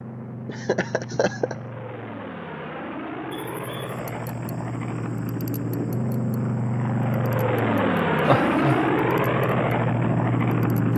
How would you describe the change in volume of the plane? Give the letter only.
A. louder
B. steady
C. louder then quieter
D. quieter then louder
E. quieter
A.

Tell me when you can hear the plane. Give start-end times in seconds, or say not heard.
0.0-10.9.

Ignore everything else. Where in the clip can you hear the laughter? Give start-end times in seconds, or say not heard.
0.5-1.6, 8.2-8.8.